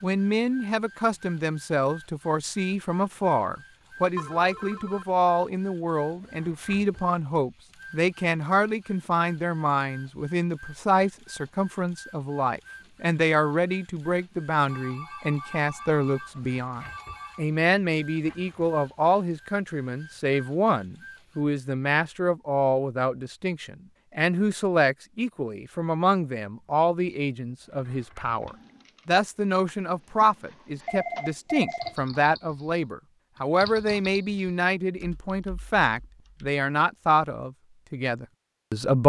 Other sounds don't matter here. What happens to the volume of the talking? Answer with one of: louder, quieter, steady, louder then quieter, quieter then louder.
steady.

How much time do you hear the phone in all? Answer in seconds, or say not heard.
5 s.